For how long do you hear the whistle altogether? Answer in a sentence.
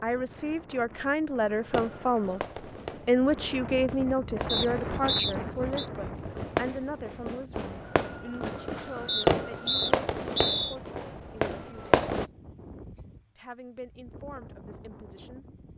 You can hear the whistle for 3 seconds altogether.